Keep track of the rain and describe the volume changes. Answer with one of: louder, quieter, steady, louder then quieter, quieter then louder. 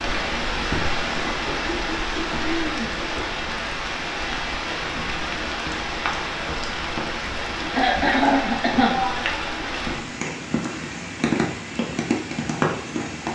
steady.